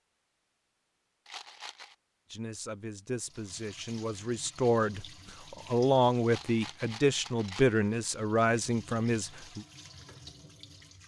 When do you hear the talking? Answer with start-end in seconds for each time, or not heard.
2.3-9.7.